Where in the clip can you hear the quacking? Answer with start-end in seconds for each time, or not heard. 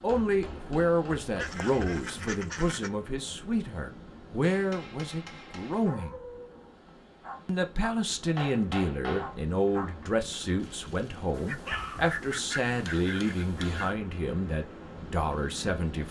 1.4-2.9, 11.3-13.9.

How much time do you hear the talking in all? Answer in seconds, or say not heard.
15 s.